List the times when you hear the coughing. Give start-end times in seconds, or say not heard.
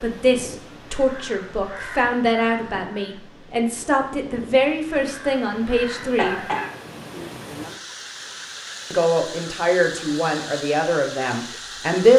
6.2-7.3.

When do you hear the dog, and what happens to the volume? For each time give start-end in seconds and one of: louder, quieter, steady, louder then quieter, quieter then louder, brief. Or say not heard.
not heard.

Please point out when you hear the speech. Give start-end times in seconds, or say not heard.
0.0-6.4, 8.9-12.1.